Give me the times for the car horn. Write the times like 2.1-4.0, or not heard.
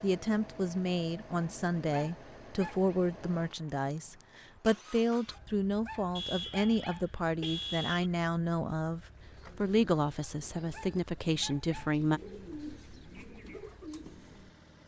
6.2-8.1.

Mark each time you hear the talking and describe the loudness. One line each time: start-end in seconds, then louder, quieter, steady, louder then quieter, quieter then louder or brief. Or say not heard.
0.0-12.2 steady.